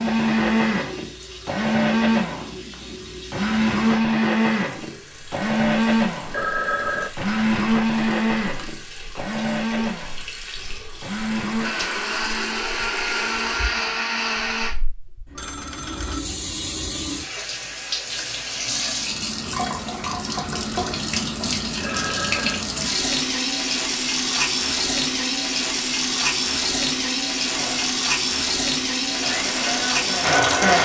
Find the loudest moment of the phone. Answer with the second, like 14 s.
7 s.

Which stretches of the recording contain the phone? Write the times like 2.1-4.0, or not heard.
6.2-7.1, 15.3-16.2, 21.8-22.6.